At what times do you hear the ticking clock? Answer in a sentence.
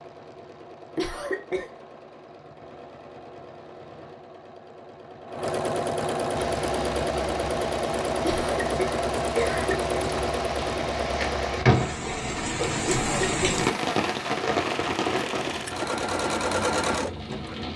The ticking clock can't be heard in this clip.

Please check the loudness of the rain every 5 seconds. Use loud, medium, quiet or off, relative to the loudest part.
off, quiet, loud, medium.